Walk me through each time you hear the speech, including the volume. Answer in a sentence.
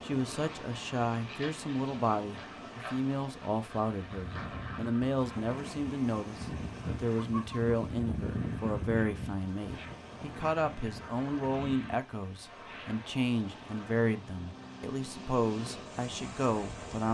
You can hear the speech from 0.0 to 17.0 s, at a steady volume.